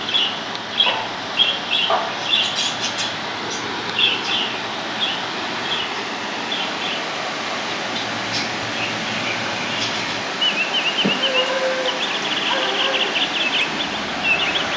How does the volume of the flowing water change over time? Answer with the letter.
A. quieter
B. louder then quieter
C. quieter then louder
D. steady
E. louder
D.